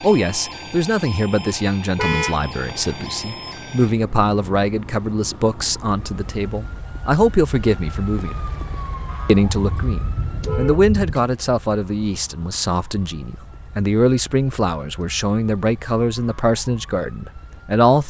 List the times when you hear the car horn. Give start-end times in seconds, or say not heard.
1.9-2.5, 9.5-11.2.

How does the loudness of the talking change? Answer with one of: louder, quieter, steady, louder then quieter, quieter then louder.
steady.